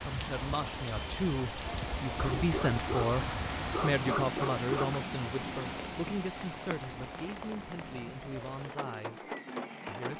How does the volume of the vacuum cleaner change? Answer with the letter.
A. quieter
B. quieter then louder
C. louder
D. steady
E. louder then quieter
A.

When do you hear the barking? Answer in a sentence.
The barking can be heard from 2.1 to 5.0 s.